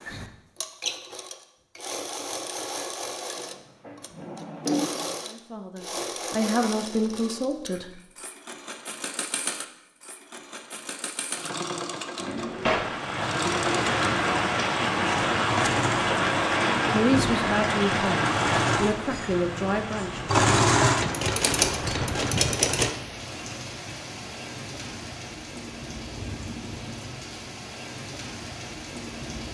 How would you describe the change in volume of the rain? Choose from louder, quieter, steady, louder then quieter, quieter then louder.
quieter.